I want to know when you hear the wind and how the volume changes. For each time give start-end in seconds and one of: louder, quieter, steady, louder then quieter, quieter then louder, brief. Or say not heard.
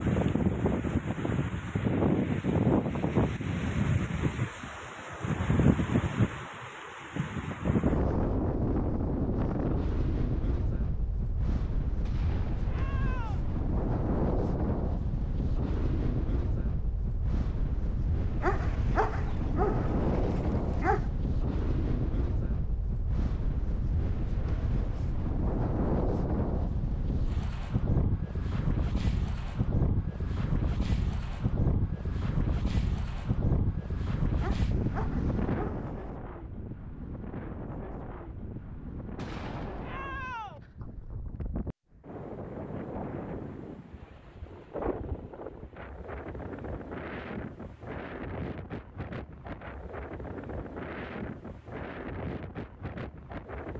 0.0-53.7 quieter.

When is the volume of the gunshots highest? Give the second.
40 s.